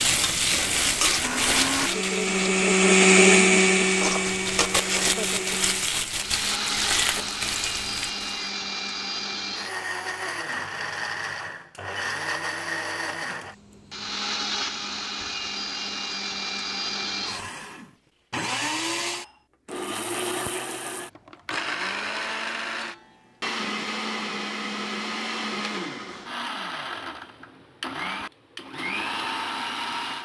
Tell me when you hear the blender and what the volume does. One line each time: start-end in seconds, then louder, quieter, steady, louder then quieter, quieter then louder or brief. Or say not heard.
0.0-30.1 quieter.